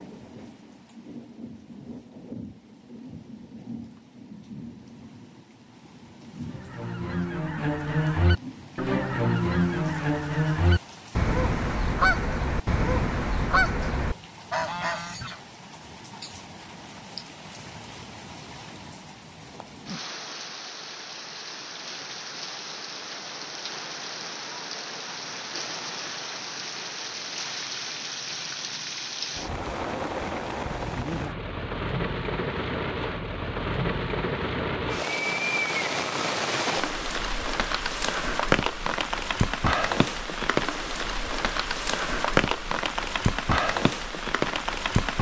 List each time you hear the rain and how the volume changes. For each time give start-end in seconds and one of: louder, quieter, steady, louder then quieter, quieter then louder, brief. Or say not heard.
0.0-45.1 louder.